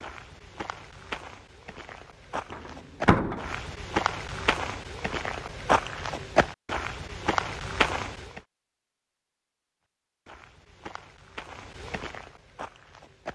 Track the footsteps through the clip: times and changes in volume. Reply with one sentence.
The footsteps can be heard from 0.0 to 8.4 s, getting louder; and briefly from 10.2 to 13.2 s.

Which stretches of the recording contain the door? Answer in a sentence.
You can hear the door from 2.5 to 3.5 s.